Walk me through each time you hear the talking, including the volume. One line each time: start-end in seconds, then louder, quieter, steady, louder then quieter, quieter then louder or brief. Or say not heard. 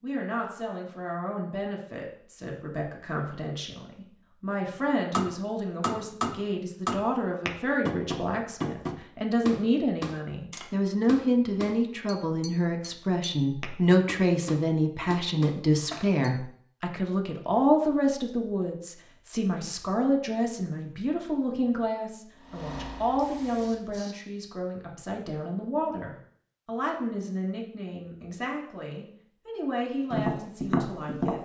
0.0-31.4 louder then quieter.